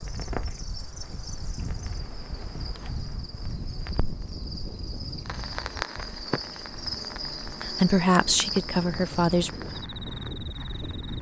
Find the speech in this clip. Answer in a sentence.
You can hear the speech from 7.5 to 9.5 s.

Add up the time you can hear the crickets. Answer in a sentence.
You can hear the crickets for 11 seconds altogether.